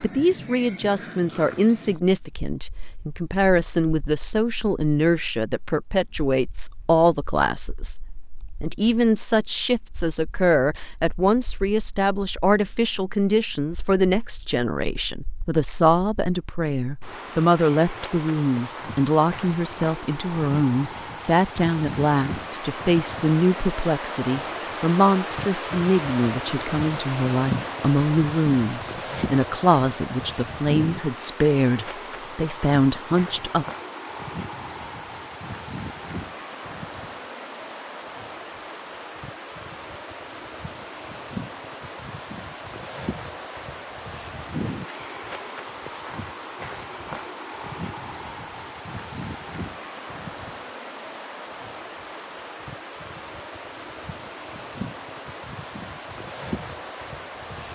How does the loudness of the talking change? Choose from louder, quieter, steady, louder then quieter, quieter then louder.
steady.